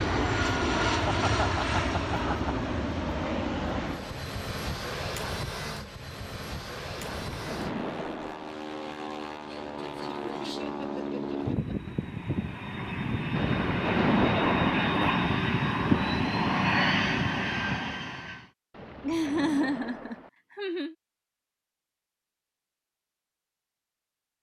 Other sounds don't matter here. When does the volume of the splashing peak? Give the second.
14 s.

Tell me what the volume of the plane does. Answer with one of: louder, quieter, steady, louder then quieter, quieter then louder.
quieter then louder.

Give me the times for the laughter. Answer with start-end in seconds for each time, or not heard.
1.1-2.7, 10.1-11.9, 19.0-20.9.